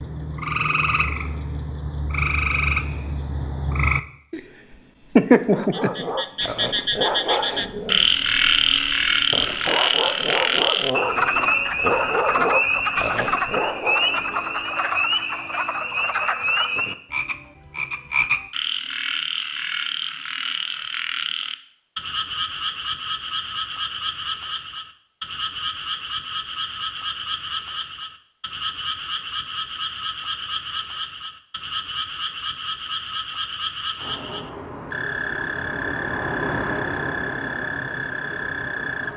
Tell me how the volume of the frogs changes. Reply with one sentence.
The loudness of the frogs goes down.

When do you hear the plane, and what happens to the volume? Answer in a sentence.
You can hear the plane from 34.0 to 39.1 s, getting louder then quieter.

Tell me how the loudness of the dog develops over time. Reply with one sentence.
The volume of the dog goes down, then up.